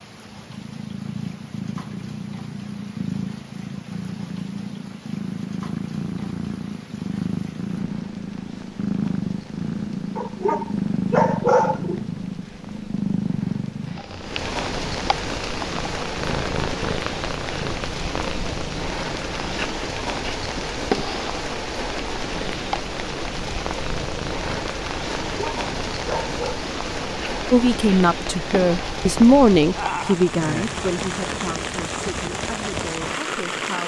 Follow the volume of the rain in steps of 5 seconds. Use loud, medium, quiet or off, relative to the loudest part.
quiet, quiet, medium, loud, loud, loud, loud.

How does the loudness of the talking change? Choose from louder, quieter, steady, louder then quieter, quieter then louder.
louder then quieter.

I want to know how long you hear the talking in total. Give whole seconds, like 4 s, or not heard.
6 s.